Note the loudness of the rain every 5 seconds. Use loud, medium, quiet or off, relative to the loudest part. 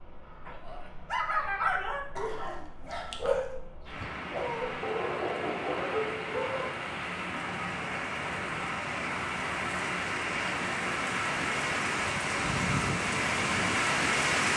quiet, medium, loud.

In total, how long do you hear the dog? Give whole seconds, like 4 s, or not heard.
6 s.